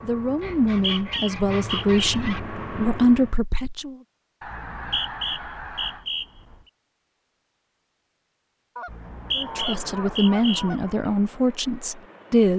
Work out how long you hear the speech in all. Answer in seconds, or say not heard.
7 s.